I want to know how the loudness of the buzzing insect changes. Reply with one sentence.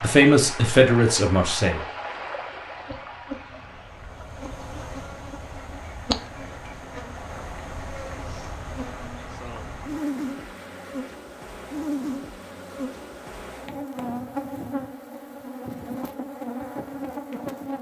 The loudness of the buzzing insect goes up.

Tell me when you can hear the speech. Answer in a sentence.
The speech can be heard from 0.0 to 1.8 s.